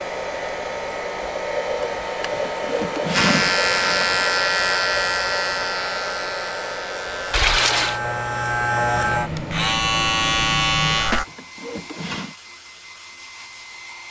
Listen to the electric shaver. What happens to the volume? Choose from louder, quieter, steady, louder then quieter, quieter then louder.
quieter then louder.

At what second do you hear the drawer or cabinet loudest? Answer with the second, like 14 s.
3 s.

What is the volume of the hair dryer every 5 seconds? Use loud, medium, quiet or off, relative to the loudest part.
loud, medium, quiet.